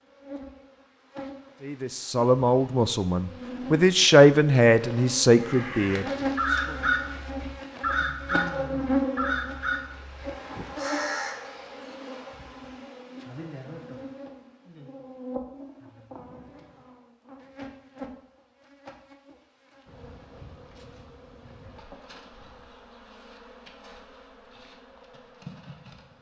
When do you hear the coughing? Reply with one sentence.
You can't hear the coughing here.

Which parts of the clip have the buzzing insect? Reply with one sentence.
The buzzing insect can be heard from 0.0 to 26.1 s.